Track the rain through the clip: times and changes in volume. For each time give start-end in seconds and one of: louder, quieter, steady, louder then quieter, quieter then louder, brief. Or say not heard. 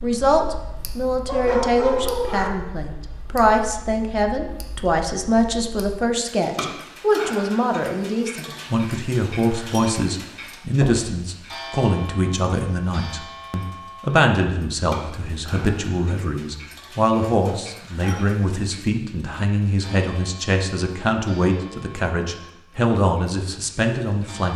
not heard.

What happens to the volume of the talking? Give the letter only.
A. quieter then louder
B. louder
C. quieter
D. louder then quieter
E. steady
E.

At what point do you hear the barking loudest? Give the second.
2 s.